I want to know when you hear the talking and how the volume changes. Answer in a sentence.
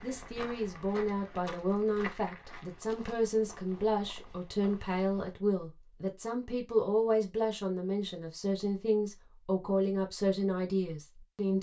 You can hear the talking from 0.0 to 11.5 s, at a steady volume.